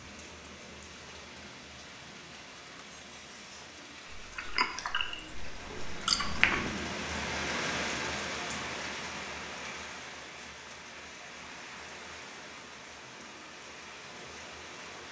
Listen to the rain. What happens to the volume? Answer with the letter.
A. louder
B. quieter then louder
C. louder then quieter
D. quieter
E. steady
C.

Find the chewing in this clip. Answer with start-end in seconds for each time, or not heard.
4.2-6.7.